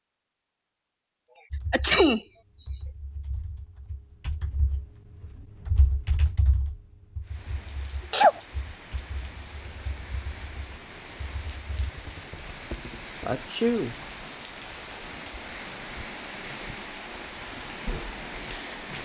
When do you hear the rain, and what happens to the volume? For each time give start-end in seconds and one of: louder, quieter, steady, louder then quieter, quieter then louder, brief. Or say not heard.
7.2-18.9 louder.